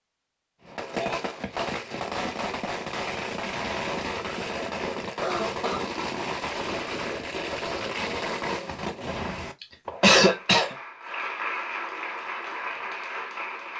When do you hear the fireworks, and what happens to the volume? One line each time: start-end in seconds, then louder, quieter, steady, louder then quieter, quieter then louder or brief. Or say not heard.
0.7-10.1 steady.